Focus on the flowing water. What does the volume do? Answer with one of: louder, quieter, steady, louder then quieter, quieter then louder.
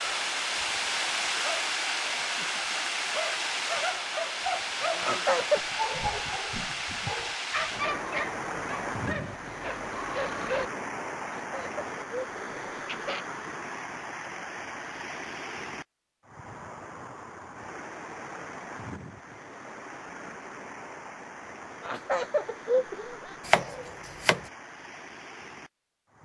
quieter.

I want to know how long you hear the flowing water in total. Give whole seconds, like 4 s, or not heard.
26 s.